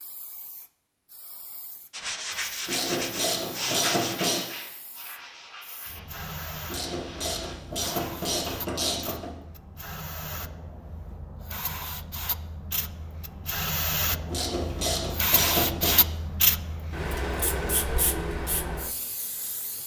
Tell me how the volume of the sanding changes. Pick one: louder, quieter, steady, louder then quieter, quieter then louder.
quieter.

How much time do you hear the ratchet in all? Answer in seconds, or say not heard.
6 s.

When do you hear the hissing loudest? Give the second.
16 s.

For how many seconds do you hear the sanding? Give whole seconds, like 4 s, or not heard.
6 s.